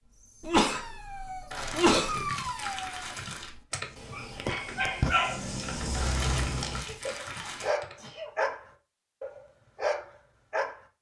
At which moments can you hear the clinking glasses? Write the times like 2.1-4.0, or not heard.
not heard.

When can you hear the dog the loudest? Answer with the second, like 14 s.
5 s.